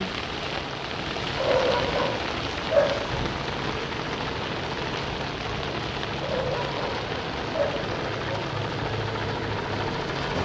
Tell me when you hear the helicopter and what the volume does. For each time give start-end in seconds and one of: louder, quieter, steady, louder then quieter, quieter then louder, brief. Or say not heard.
0.1-10.4 louder.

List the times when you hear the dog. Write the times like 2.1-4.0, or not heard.
1.4-3.1, 6.2-7.8.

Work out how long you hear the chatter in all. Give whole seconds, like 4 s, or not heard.
not heard.